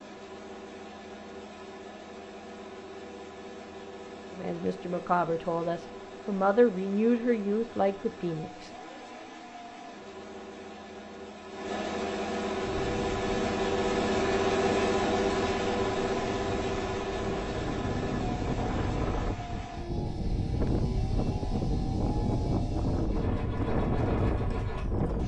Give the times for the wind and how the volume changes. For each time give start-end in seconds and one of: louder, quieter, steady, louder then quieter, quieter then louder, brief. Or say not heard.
12.6-25.2 louder.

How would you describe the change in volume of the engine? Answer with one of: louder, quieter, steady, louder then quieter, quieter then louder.
louder then quieter.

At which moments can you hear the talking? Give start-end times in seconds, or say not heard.
4.3-8.7.